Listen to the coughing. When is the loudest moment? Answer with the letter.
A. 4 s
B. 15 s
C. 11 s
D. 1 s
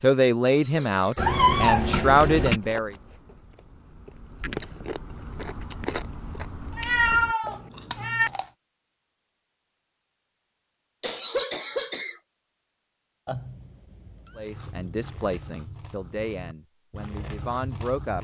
C.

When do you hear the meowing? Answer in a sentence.
The meowing can be heard from 1.1 to 2.6 s, from 6.8 to 8.3 s and from 13.2 to 14.4 s.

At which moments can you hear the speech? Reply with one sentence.
You can hear the speech from 0.0 to 3.0 s and from 14.3 to 18.1 s.